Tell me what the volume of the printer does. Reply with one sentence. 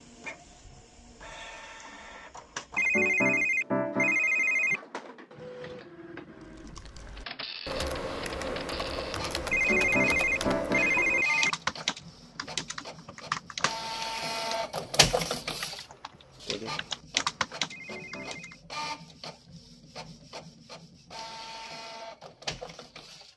The loudness of the printer goes up, then down.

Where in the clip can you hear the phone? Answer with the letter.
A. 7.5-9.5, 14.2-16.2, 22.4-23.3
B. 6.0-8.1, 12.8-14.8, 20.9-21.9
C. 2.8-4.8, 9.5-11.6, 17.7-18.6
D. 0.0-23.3
C.